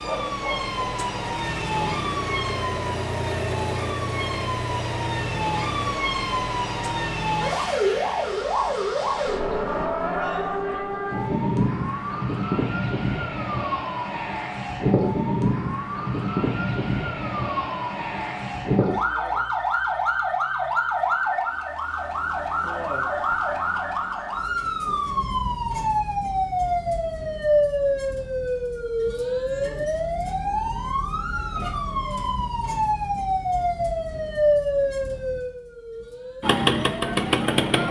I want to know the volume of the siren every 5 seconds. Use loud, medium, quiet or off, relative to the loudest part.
medium, loud, loud, loud, loud, loud, loud, medium.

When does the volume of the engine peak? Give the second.
37 s.